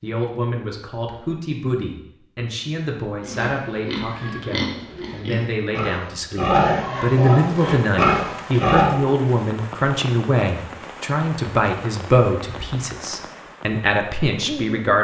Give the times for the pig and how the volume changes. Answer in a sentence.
You can hear the pig from 3.2 to 8.9 s, getting louder.